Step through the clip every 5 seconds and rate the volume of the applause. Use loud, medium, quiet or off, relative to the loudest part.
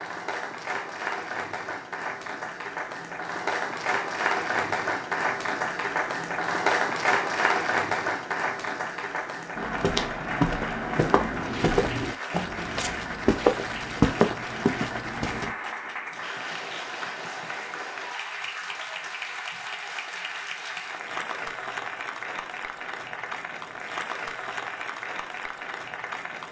loud, loud, medium, medium, medium, medium.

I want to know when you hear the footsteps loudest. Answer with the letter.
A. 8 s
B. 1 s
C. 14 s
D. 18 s
C.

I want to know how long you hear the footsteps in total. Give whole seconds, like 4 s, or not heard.
6 s.